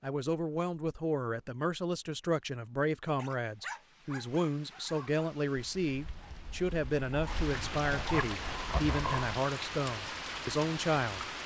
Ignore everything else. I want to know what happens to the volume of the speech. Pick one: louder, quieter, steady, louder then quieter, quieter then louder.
steady.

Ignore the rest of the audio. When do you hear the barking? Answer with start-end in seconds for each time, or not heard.
3.1-9.3.